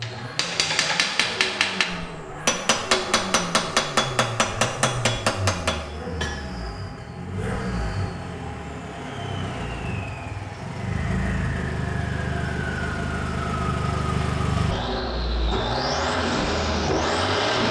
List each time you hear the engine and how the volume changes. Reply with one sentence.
You can hear the engine from 0.0 to 17.6 s, getting louder.